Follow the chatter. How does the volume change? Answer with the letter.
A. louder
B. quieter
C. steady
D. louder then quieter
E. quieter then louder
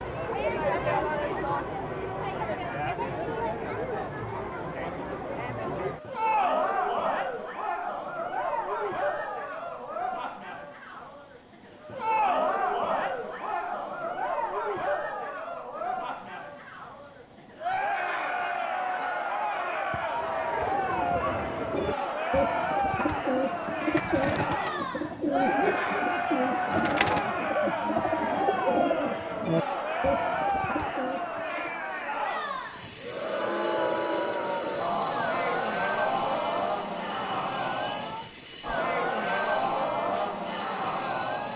C.